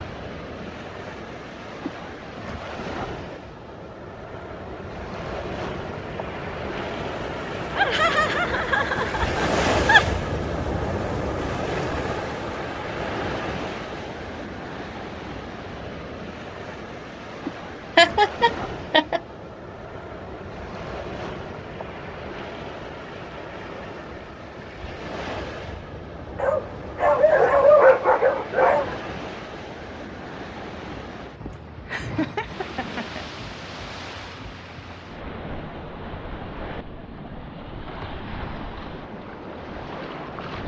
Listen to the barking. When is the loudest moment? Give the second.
28 s.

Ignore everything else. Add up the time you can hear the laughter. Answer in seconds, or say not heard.
5 s.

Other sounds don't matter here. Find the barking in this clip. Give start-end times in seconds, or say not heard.
26.4-28.9.